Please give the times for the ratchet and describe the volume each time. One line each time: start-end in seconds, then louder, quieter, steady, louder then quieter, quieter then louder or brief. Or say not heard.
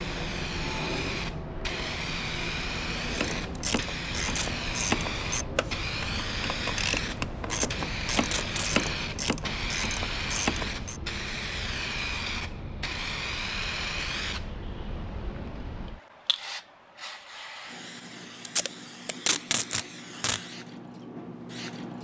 3.1-11.0 steady.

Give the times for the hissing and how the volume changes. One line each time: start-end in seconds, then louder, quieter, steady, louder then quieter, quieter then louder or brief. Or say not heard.
0.0-21.9 quieter.